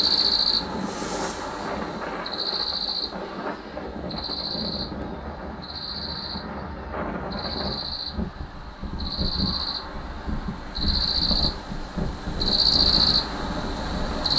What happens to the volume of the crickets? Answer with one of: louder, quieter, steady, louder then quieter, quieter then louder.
quieter then louder.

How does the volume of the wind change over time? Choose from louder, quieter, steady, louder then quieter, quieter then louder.
steady.